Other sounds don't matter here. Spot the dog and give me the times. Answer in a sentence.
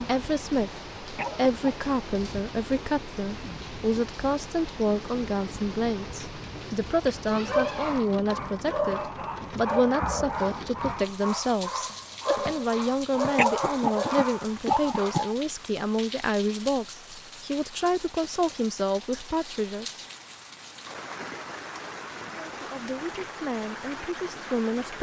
The dog can be heard from 7.3 to 15.2 s.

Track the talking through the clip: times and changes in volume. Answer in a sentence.
You can hear the talking from 0.0 to 19.9 s, at a steady volume; and briefly from 22.3 to 24.9 s.